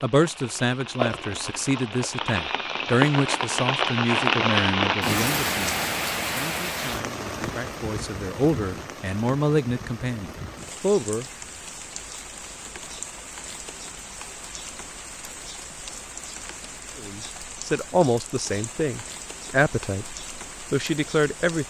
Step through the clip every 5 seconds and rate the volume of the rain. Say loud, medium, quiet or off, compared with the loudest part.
loud, loud, quiet, quiet, quiet.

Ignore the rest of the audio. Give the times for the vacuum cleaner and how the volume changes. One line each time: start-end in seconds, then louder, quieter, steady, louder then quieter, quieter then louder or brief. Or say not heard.
not heard.